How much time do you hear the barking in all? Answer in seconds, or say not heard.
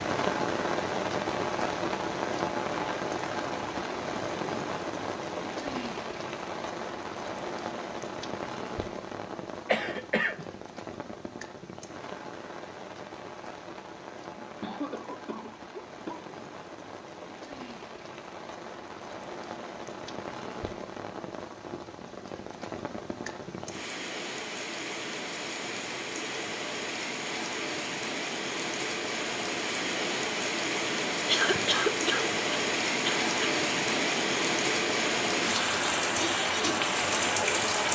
not heard.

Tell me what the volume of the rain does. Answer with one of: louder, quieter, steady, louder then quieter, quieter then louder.
quieter then louder.